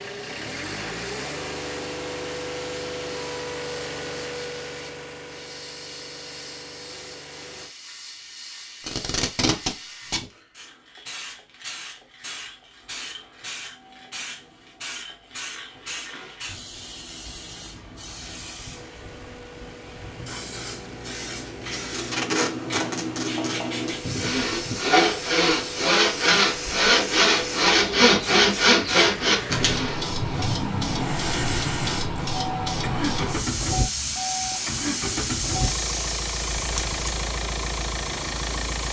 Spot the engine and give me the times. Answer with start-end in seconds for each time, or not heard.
0.0-7.8, 18.7-38.8.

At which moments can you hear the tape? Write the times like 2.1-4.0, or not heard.
8.8-10.2, 21.6-23.9, 36.5-37.0.